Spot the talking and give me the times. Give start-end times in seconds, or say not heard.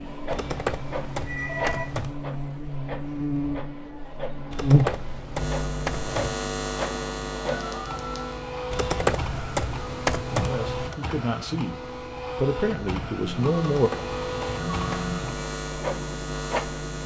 10.3-13.9.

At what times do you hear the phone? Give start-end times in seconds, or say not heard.
1.1-1.9, 7.5-8.3, 13.2-15.2.